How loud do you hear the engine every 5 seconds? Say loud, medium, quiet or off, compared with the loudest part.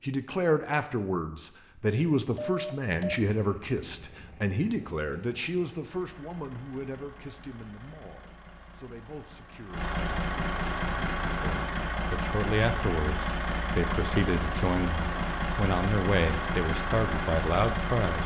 quiet, quiet, loud, loud.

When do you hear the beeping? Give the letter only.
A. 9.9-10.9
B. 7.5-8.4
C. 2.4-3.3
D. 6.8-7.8
C.